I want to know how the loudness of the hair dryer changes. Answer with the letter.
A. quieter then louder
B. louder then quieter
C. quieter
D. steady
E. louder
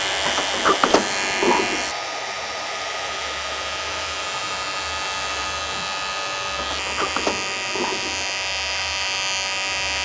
C.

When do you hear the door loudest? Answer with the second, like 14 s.
1 s.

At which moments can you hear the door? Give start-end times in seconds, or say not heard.
0.2-1.9, 6.5-8.2.